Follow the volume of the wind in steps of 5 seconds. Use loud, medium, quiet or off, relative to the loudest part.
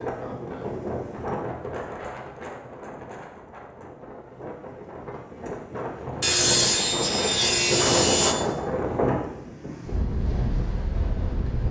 medium, loud, loud.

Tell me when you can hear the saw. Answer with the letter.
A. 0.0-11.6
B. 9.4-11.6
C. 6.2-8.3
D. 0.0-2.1
C.